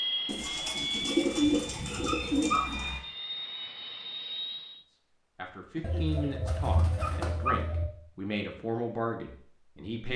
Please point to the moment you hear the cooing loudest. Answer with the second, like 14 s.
1 s.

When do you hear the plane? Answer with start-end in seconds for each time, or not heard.
0.0-4.8.